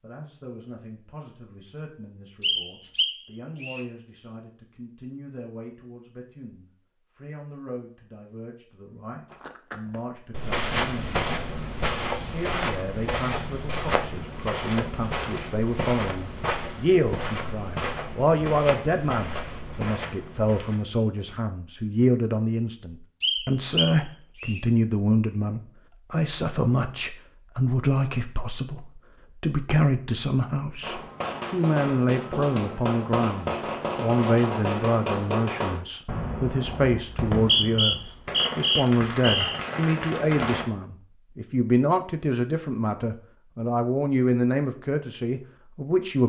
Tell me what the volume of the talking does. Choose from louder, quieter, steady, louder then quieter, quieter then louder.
louder.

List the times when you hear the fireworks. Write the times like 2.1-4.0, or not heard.
30.8-40.6.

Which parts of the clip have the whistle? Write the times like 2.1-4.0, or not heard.
2.4-3.9, 23.2-24.6, 37.0-39.6.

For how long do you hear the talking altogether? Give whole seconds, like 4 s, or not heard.
46 s.